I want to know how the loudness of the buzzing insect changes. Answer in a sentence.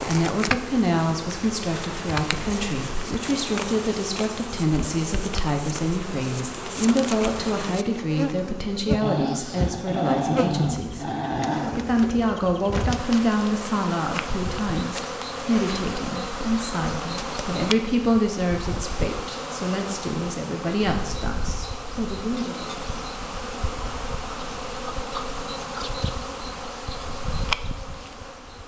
The loudness of the buzzing insect stays about the same.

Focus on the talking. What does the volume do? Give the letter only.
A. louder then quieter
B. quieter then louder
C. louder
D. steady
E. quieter
D.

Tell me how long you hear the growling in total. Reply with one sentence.
The growling can be heard for 3 seconds in total.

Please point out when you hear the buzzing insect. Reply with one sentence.
The buzzing insect can be heard from 0.0 to 28.6 s.